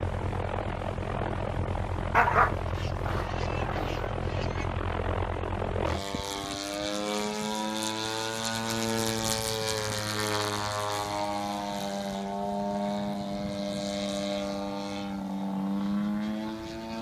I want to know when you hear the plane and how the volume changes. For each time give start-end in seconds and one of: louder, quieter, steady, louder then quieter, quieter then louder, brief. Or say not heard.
0.0-16.9 steady.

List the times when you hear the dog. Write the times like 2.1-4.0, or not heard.
2.1-4.0.